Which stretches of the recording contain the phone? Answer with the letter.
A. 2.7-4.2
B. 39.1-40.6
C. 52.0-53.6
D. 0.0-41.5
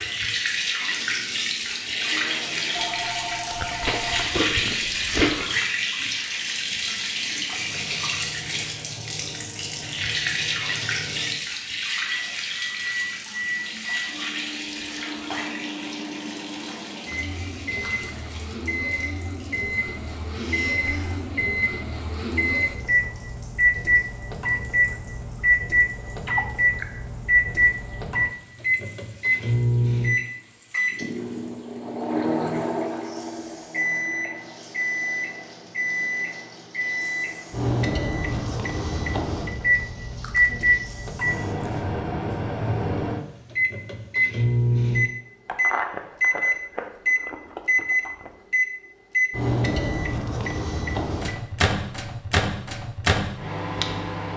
A.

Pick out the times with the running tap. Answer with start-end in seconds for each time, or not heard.
0.0-41.5.